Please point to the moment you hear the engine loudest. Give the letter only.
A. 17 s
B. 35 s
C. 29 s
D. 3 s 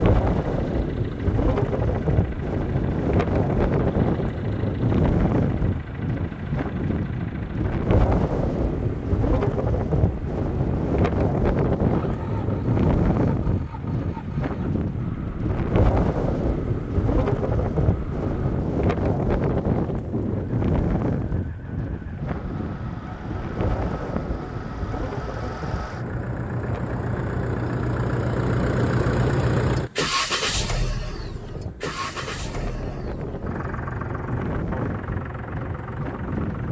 C.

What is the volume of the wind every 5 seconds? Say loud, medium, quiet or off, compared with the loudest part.
loud, loud, loud, loud, medium, medium, medium, medium.